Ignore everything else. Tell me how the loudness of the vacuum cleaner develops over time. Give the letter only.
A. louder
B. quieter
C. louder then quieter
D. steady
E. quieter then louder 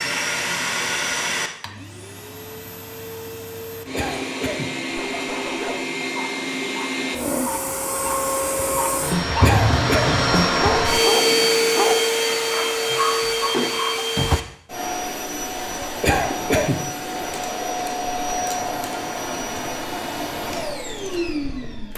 C.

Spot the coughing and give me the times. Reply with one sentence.
You can hear the coughing from 3.9 to 4.7 s, from 9.4 to 10.2 s and from 16.0 to 16.8 s.